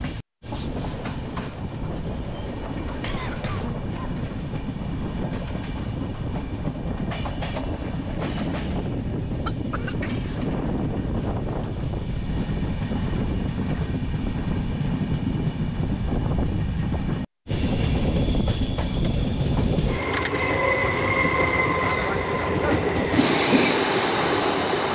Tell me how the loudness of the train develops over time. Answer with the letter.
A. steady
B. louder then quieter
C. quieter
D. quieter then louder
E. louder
E.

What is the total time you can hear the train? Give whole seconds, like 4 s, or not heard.
25 s.